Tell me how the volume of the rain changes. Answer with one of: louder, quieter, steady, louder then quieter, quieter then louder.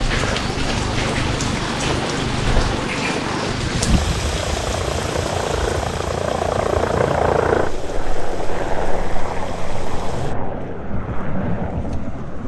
quieter then louder.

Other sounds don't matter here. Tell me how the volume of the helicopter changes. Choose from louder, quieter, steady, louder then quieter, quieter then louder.
louder then quieter.